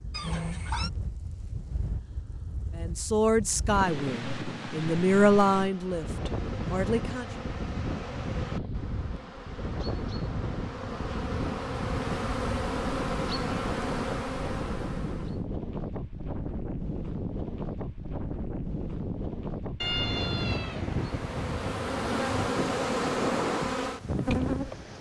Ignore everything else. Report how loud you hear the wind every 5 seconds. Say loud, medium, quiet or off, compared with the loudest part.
medium, loud, loud, loud, loud.